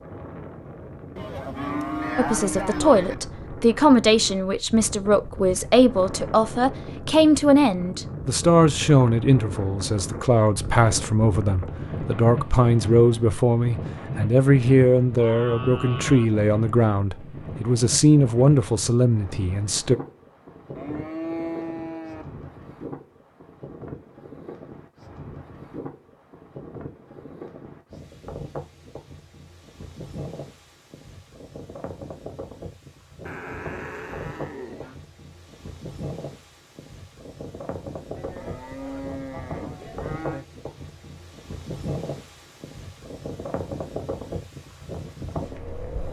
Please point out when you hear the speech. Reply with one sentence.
The speech can be heard from 2.1 to 20.0 s.